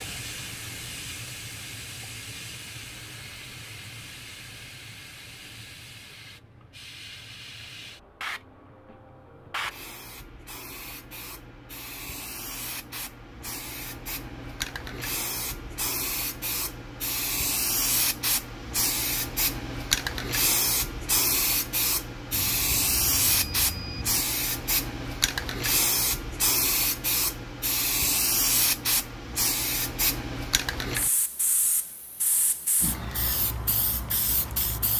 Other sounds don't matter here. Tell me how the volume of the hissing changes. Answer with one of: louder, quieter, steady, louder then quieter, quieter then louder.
louder.